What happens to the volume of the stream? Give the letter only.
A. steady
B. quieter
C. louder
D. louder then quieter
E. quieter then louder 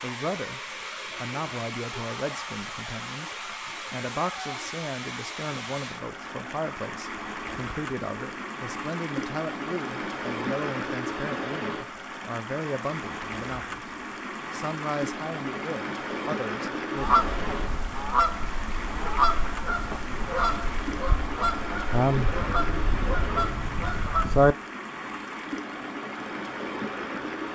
A.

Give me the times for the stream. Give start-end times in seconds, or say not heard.
0.0-27.5.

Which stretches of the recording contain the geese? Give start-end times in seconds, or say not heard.
16.9-24.6.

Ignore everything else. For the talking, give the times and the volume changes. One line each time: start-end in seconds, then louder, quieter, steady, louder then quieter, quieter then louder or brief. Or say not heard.
0.0-0.6 brief
1.2-13.9 steady
14.5-17.2 brief.